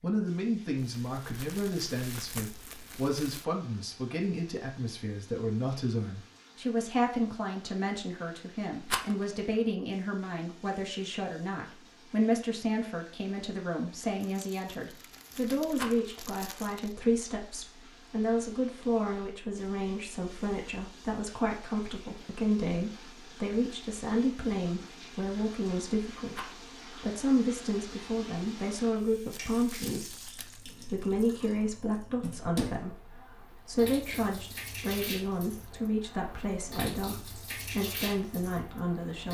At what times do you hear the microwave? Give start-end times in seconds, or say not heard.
not heard.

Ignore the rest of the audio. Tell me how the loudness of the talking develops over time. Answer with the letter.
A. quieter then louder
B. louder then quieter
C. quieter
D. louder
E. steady
E.